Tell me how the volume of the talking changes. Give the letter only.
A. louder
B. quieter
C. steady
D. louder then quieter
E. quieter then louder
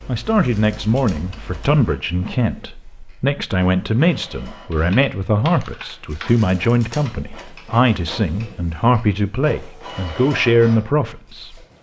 C.